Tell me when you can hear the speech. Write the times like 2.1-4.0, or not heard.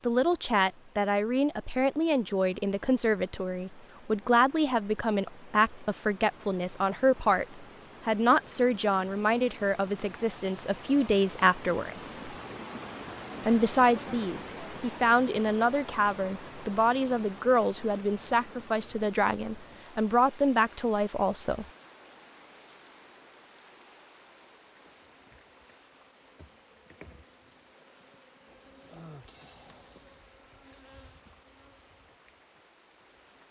0.1-12.3, 13.4-21.6.